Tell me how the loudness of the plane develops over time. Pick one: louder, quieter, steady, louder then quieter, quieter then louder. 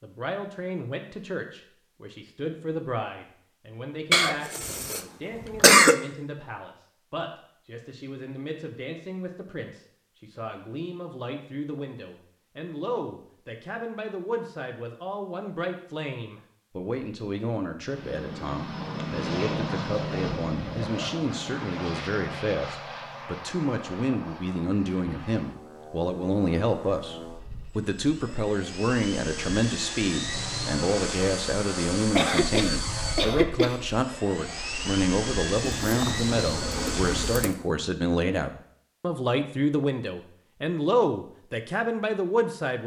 quieter then louder.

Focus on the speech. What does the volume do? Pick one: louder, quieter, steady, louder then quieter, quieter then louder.
louder.